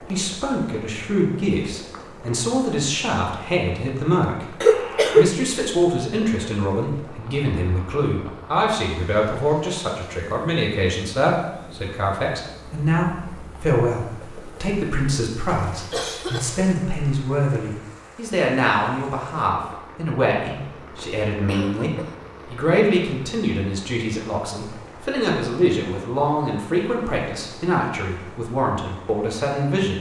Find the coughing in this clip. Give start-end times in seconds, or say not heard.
4.6-5.2, 15.4-16.8, 21.4-22.2.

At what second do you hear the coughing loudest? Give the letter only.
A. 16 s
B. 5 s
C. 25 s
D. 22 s
B.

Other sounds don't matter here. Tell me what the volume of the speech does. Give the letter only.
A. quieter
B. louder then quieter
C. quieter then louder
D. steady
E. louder
D.